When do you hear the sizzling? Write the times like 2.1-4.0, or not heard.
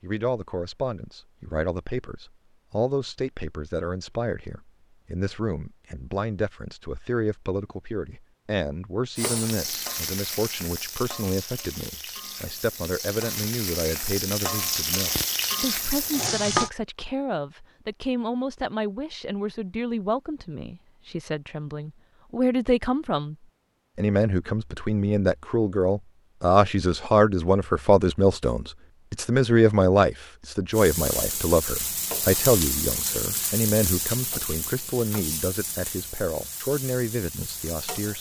9.2-16.7, 30.7-38.1.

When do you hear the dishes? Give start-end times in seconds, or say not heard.
not heard.